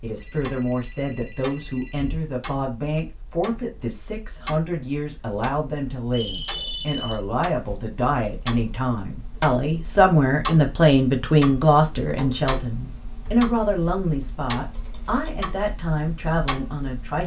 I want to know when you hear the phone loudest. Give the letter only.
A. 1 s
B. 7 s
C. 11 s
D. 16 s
B.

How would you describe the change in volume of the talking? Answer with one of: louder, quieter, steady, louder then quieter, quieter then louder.
louder then quieter.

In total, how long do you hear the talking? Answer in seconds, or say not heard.
17 s.